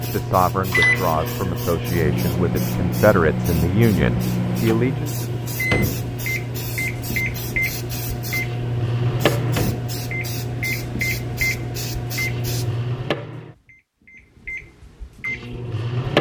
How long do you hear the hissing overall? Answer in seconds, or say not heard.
13 s.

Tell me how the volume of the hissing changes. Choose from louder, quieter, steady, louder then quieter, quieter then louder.
steady.